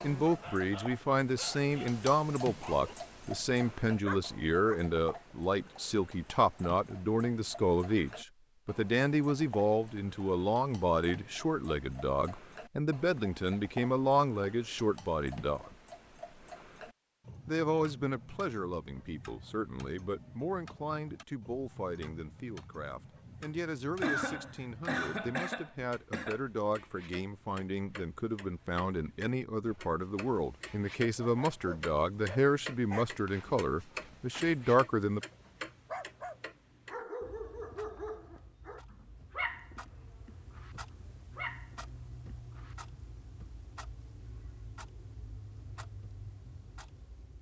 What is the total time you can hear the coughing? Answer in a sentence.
The coughing can be heard for 2 seconds in total.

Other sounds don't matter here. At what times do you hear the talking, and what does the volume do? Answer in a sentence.
The talking can be heard from 0.0 to 15.7 s, at a steady volume; and from 17.4 to 35.2 s, getting louder.